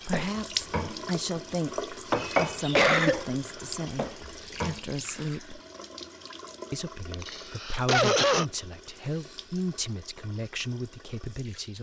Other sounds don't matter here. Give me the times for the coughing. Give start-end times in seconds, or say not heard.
2.1-3.4, 7.1-8.4.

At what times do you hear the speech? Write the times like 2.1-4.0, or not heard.
0.0-5.6, 6.7-11.7.